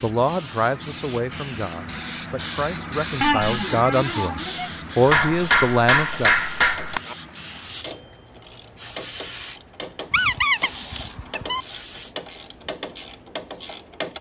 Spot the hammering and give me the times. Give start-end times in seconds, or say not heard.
5.0-7.0.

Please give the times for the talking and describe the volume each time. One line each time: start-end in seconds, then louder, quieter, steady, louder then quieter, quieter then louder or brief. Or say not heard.
0.0-6.3 quieter then louder.